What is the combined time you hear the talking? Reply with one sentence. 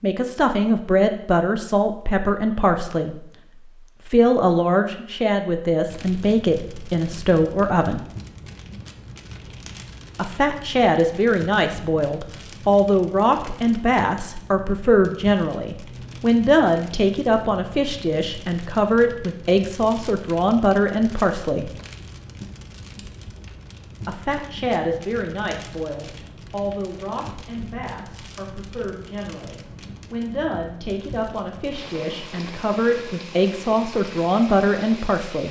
The talking can be heard for 30 seconds in total.